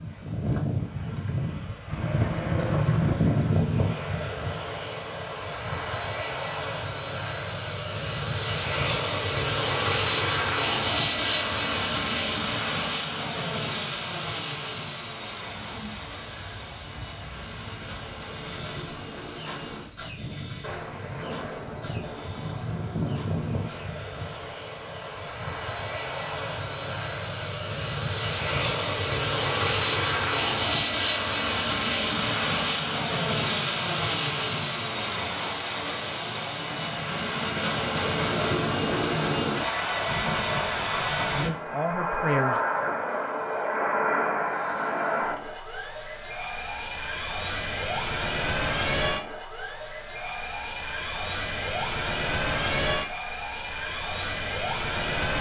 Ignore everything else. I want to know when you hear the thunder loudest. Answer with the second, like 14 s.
3 s.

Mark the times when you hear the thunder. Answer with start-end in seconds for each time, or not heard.
1.9-3.5, 20.6-23.9, 39.9-41.5.